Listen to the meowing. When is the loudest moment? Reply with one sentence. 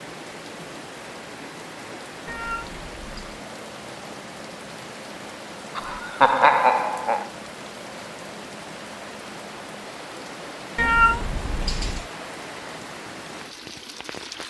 The loudest moment of the meowing is at 11 seconds.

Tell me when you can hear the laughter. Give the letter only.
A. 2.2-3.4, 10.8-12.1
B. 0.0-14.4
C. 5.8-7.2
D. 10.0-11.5
C.